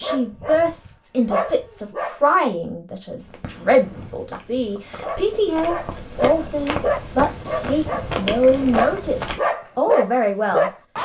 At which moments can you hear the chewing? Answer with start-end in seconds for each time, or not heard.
3.1-9.4.